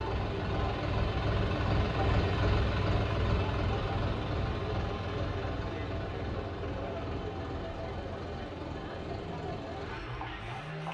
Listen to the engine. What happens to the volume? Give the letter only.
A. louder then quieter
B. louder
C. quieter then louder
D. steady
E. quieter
E.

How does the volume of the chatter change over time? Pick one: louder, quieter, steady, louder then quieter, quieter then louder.
steady.